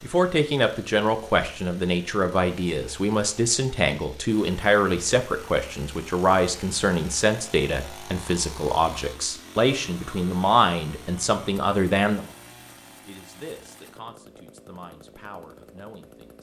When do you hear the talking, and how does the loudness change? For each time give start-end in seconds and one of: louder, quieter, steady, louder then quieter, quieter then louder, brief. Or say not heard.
0.0-16.3 quieter.